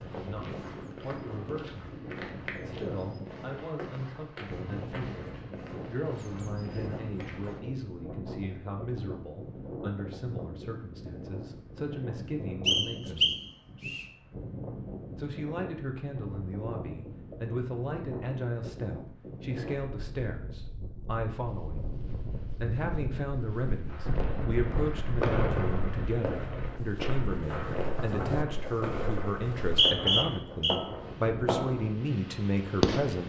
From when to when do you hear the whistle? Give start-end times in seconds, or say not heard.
12.7-14.1, 29.6-30.8.